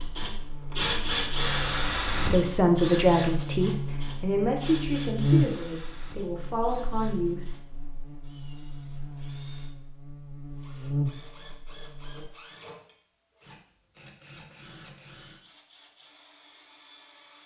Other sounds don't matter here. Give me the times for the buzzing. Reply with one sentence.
You can hear the buzzing from 0.0 to 12.3 s.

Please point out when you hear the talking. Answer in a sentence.
You can hear the talking from 2.1 to 7.5 s.